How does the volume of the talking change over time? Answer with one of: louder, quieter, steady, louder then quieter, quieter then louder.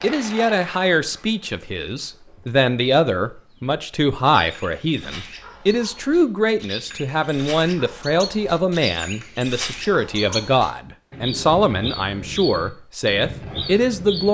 steady.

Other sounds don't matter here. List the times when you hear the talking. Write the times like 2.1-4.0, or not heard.
0.0-14.2.